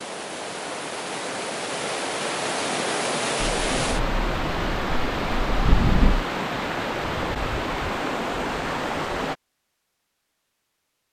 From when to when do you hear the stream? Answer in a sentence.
You can hear the stream from 0.0 to 9.3 s.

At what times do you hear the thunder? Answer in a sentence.
The thunder can be heard from 3.4 to 6.2 s.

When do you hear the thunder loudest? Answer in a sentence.
The loudest moment of the thunder is at 6 seconds.